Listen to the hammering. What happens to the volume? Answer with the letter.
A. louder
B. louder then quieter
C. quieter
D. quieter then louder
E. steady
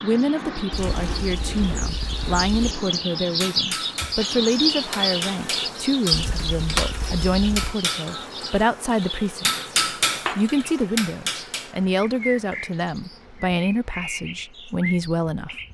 A.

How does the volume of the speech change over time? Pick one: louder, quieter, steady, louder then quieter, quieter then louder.
steady.